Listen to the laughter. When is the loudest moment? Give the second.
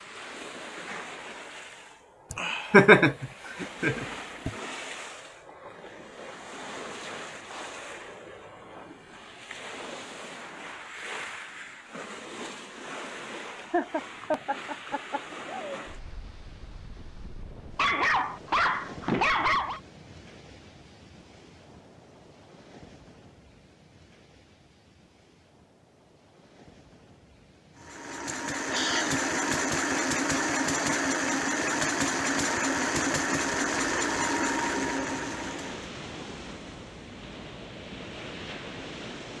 3 s.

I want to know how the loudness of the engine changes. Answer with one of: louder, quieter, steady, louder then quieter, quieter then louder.
steady.